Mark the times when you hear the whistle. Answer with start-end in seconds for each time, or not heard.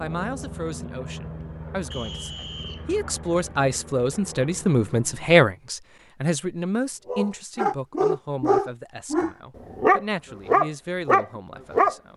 1.9-3.0.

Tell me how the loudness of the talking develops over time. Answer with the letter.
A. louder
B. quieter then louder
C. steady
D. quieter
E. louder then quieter
E.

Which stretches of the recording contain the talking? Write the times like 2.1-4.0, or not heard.
0.0-12.1.